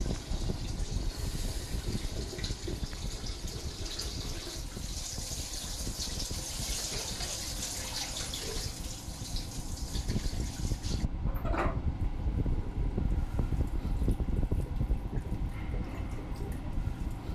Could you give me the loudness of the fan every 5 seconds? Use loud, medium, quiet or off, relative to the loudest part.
medium, medium, loud, loud.